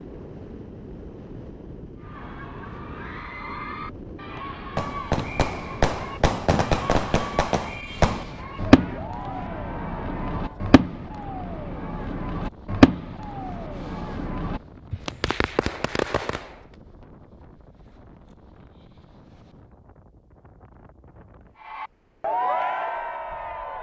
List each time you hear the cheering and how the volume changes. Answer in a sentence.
You can hear the cheering from 2.0 to 10.7 s, at a steady volume; and briefly from 21.6 to 23.7 s.